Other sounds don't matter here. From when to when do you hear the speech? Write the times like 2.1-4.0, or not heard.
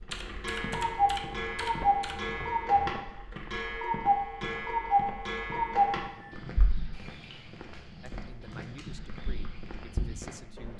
8.0-10.7.